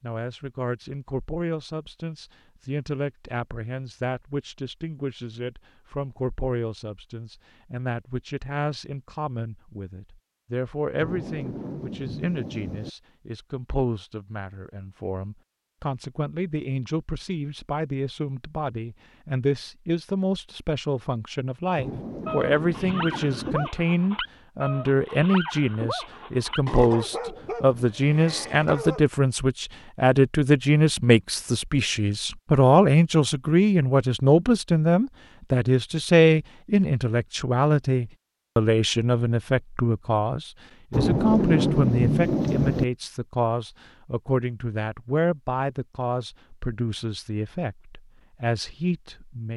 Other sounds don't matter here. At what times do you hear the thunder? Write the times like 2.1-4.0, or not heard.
10.9-12.9, 21.8-23.7, 40.9-42.9.